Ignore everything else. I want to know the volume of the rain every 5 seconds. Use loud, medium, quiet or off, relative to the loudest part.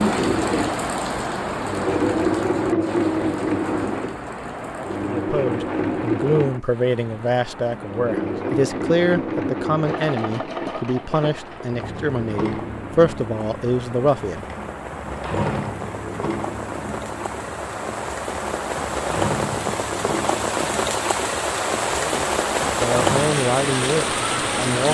medium, quiet, quiet, medium, loud.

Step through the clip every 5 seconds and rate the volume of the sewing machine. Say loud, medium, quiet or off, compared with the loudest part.
loud, loud, medium, medium, medium.